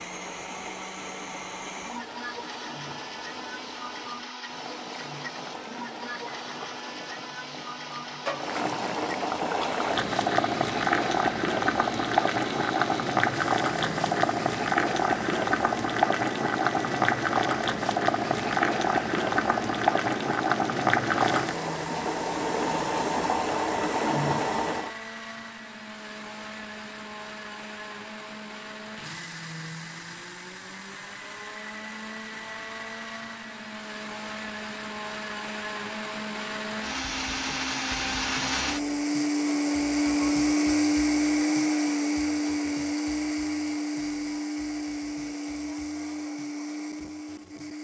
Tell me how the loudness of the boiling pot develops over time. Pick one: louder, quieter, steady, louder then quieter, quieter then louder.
louder.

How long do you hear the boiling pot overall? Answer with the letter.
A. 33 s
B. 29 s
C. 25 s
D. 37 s
C.